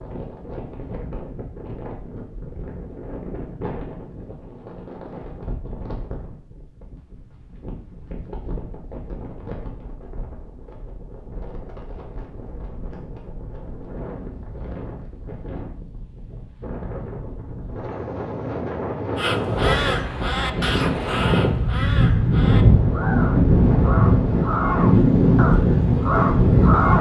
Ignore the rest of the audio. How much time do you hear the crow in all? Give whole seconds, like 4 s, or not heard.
8 s.